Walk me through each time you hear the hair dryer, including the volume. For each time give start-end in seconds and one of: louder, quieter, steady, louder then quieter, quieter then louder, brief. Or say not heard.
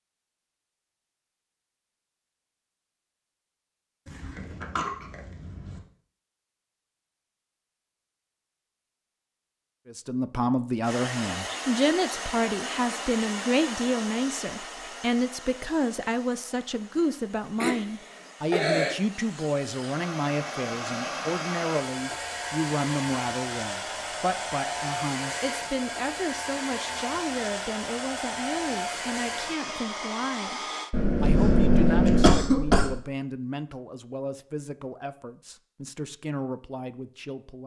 10.8-30.9 quieter then louder.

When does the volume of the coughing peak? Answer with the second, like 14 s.
32 s.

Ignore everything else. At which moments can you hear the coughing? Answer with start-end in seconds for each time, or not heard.
4.0-5.8, 16.9-18.9, 30.9-33.0.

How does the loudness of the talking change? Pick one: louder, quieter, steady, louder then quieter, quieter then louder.
quieter.